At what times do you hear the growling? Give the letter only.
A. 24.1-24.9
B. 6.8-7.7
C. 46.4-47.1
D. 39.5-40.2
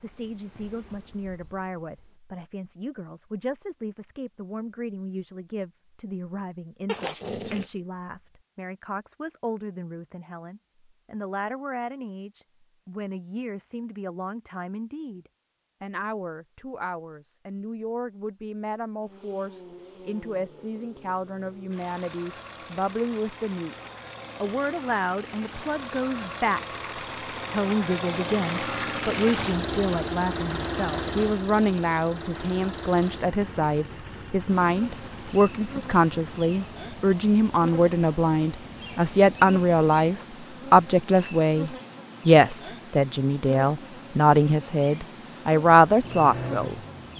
B.